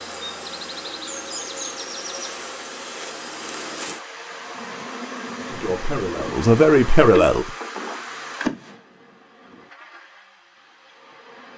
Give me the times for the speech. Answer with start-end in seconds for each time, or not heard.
5.5-7.5.